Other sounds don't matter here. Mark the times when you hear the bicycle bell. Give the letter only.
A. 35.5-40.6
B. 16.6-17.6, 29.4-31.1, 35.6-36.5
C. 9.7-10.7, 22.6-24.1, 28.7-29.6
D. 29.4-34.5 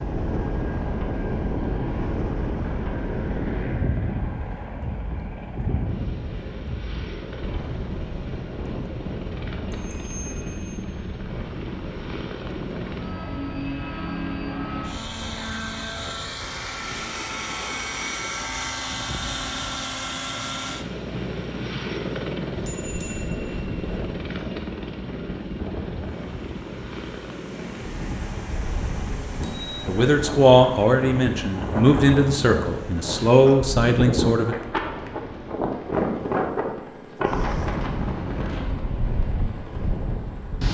C.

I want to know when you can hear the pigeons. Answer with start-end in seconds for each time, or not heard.
not heard.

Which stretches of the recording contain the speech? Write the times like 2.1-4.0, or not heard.
29.4-34.5.